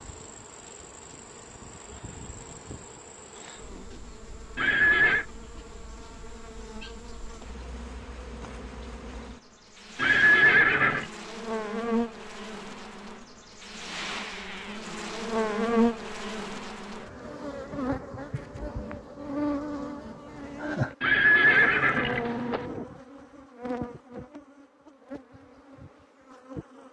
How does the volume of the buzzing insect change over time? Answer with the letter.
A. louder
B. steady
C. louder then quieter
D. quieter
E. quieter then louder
C.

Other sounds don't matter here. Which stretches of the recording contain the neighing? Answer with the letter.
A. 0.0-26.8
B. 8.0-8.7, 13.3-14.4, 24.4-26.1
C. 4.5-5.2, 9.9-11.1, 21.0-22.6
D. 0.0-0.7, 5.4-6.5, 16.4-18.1
C.